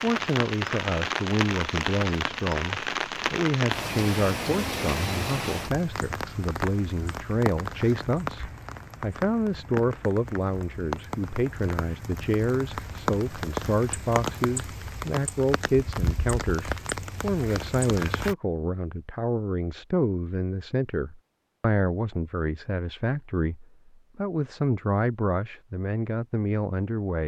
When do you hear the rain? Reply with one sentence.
The rain can be heard from 0.0 to 18.4 s.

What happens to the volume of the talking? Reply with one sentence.
The volume of the talking stays about the same.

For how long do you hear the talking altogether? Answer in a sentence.
The talking can be heard for 27 seconds in total.